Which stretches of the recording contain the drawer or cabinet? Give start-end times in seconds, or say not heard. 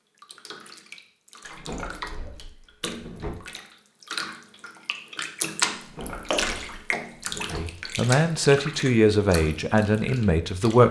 1.4-3.3, 5.8-7.6.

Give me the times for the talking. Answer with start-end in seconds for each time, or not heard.
7.5-10.8.